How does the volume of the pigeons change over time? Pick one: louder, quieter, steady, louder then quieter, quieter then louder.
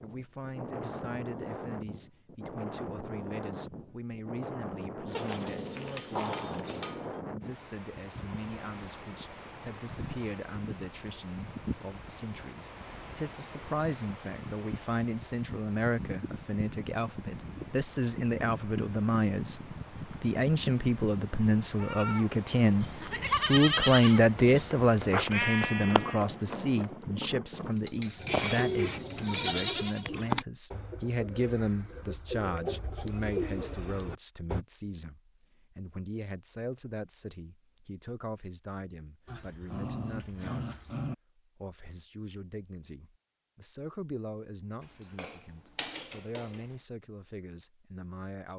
quieter then louder.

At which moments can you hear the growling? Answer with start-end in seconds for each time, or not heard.
5.1-6.8, 39.2-41.1.